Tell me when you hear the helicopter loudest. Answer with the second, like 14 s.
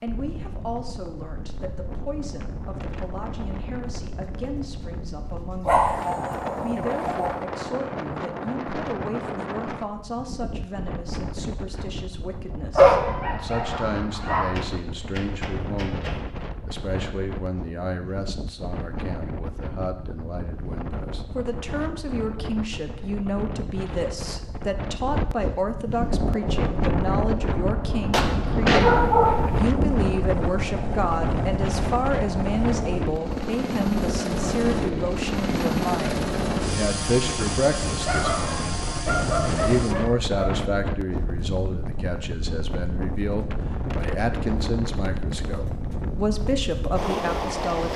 36 s.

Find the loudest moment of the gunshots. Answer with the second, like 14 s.
29 s.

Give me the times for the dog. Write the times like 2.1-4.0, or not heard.
5.7-7.5, 12.8-14.5, 28.8-29.6, 38.0-40.5.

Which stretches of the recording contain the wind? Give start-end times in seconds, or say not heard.
0.0-47.9.